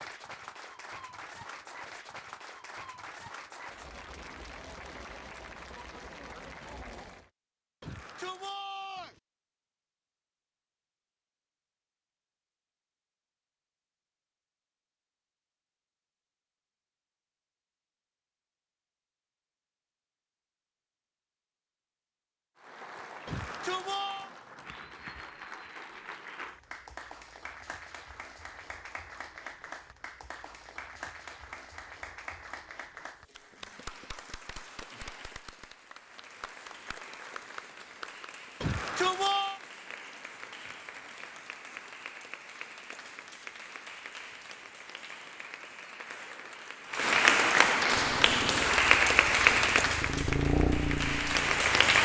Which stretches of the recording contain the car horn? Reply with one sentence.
The car horn can't be heard in this clip.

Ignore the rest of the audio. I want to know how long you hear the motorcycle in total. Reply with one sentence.
The motorcycle can be heard for 4 seconds in total.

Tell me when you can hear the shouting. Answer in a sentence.
You can hear the shouting from 7.8 to 9.2 s, from 23.2 to 24.3 s and from 38.6 to 39.6 s.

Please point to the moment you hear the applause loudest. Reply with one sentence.
The loudest moment of the applause is at 49 seconds.